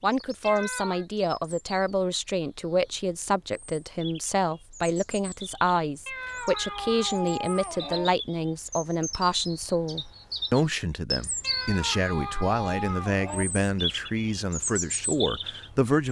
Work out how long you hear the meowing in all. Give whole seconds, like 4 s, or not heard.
5 s.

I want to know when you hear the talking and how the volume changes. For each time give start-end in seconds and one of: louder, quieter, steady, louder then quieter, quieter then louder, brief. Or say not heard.
0.0-16.0 steady.